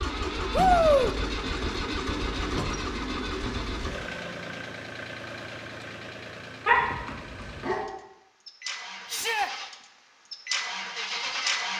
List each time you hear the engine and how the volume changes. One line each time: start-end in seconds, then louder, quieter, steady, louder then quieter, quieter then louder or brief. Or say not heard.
0.0-11.7 quieter then louder.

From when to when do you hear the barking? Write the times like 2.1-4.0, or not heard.
6.7-7.8.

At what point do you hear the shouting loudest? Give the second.
1 s.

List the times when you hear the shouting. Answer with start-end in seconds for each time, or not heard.
0.5-1.1, 9.1-9.5.